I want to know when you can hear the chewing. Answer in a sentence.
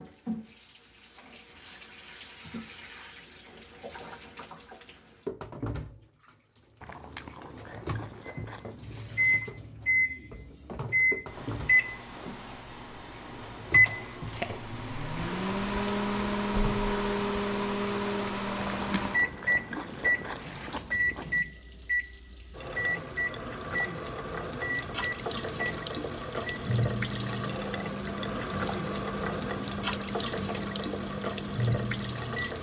The chewing can be heard from 6.8 to 9.0 s and from 18.6 to 21.4 s.